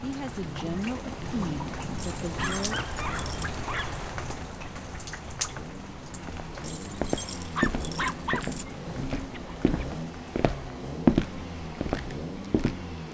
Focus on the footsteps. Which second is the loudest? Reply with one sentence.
The volume of the footsteps peaks at 11 seconds.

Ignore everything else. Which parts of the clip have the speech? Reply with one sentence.
You can hear the speech from 0.0 to 2.8 s.